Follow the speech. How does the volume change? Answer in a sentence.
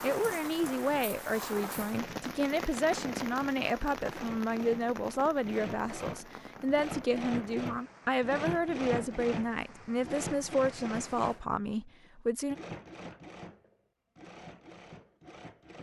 The volume of the speech stays about the same.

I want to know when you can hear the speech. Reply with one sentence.
You can hear the speech from 0.0 to 12.6 s.